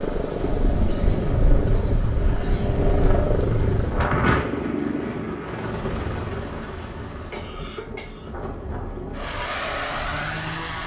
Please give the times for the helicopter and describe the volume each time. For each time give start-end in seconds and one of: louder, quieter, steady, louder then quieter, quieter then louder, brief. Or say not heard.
0.0-10.8 quieter then louder.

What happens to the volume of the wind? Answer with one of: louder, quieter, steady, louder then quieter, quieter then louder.
quieter.